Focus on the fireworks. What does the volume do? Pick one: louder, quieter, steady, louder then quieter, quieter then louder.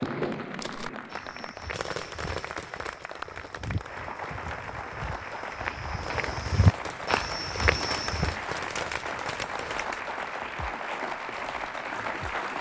quieter then louder.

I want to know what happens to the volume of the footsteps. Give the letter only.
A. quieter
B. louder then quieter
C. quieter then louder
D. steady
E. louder
E.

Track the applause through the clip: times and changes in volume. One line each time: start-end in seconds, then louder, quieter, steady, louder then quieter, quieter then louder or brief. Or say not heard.
0.0-12.5 louder.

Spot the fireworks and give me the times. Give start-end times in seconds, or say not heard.
0.0-10.0.